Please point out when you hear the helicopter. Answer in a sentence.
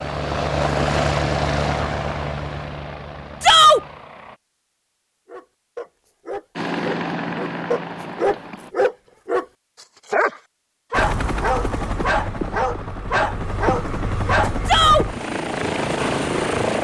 The helicopter can be heard from 0.0 to 4.4 s, from 6.5 to 8.8 s and from 10.9 to 16.7 s.